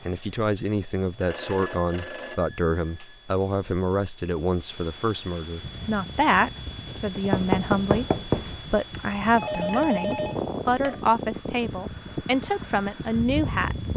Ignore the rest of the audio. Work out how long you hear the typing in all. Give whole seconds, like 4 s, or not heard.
not heard.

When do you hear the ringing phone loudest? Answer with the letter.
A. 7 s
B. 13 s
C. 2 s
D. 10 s
D.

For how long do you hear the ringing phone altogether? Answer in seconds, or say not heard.
4 s.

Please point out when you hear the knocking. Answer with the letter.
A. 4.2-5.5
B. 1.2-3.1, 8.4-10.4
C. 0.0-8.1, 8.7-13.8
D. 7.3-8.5
D.